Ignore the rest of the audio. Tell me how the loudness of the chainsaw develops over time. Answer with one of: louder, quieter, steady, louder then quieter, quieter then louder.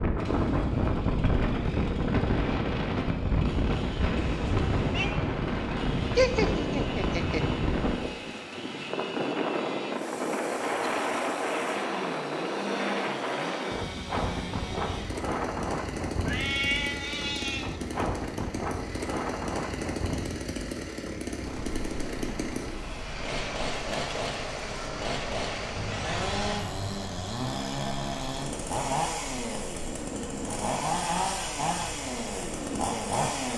louder.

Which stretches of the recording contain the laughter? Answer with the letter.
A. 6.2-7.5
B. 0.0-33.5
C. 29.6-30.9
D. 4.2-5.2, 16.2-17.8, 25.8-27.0
A.